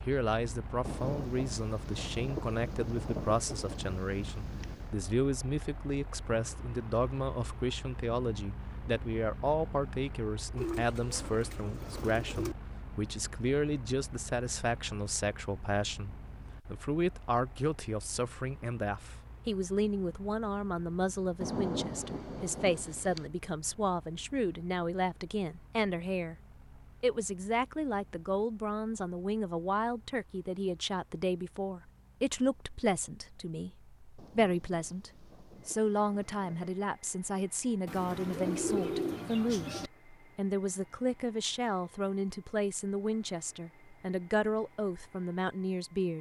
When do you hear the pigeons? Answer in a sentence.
You can hear the pigeons from 10.6 to 12.6 s and from 37.9 to 39.9 s.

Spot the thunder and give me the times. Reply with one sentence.
You can hear the thunder from 0.8 to 5.0 s, from 21.4 to 23.3 s and from 34.1 to 36.8 s.